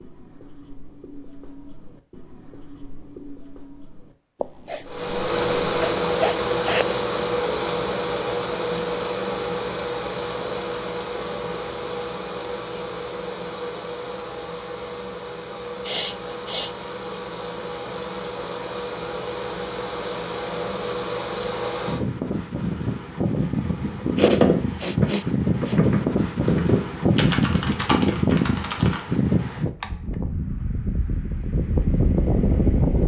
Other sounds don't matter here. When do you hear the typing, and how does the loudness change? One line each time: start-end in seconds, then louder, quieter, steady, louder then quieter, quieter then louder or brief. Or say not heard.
23.9-29.0 quieter.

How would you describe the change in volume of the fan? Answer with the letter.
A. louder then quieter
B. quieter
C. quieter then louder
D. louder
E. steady
C.